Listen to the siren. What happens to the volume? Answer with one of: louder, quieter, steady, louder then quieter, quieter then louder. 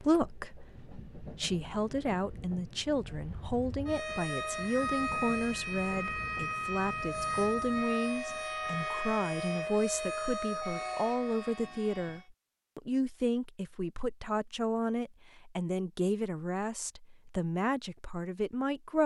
steady.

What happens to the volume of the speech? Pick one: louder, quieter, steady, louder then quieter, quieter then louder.
steady.